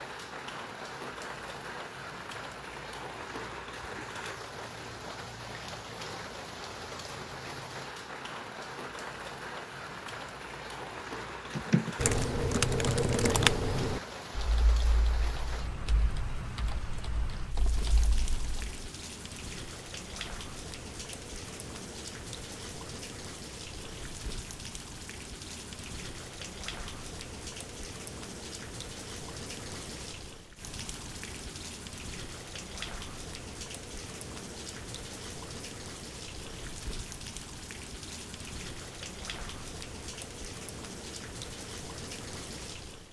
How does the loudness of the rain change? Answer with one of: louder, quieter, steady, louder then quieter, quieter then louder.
steady.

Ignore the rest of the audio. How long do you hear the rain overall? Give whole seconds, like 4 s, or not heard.
43 s.